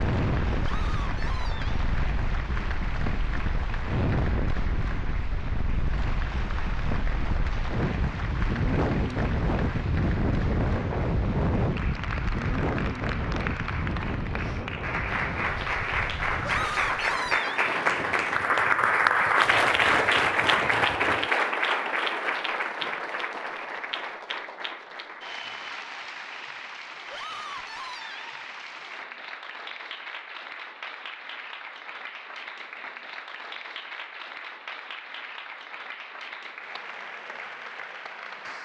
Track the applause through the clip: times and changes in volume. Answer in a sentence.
The applause can be heard from 0.0 to 38.6 s, getting louder then quieter.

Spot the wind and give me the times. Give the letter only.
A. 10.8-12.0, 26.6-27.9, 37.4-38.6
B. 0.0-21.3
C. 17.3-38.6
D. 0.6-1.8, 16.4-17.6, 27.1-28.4
B.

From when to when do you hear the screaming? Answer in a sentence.
The screaming can be heard from 0.6 to 1.8 s, from 16.4 to 17.6 s and from 27.1 to 28.4 s.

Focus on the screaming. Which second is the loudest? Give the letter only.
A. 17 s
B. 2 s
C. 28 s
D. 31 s
A.